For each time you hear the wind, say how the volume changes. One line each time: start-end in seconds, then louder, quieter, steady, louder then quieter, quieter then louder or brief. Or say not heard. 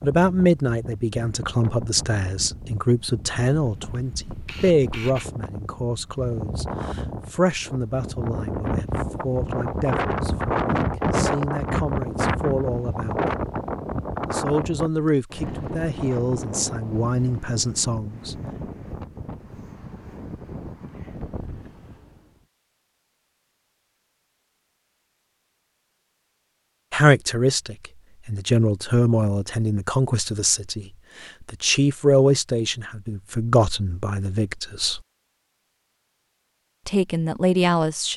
0.0-22.4 louder then quieter.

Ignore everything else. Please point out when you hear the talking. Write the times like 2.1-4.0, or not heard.
0.0-13.2, 14.3-18.4, 26.9-35.0, 36.9-38.1.